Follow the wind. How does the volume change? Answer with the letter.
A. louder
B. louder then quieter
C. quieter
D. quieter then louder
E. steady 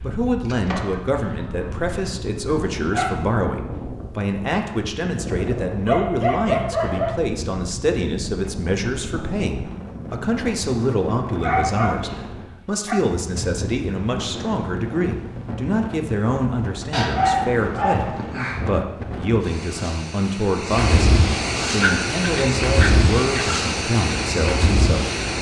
A.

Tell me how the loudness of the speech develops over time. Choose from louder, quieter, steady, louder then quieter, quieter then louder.
steady.